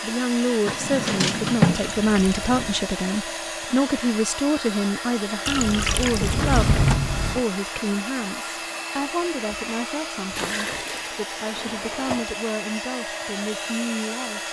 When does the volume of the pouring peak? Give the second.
6 s.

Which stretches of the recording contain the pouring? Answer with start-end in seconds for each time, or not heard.
1.7-2.9, 5.5-6.8, 10.3-11.1.